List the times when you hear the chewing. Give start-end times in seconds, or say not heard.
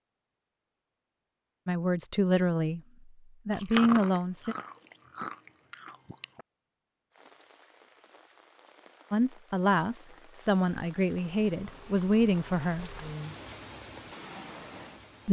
3.5-6.5.